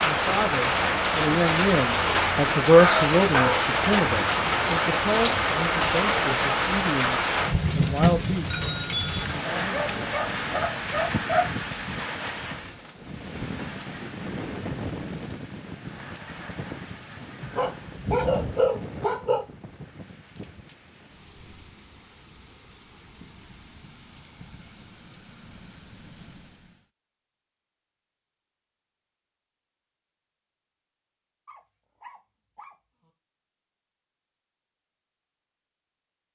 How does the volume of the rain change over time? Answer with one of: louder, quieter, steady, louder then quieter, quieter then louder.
quieter.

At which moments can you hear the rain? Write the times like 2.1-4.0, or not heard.
0.0-26.9.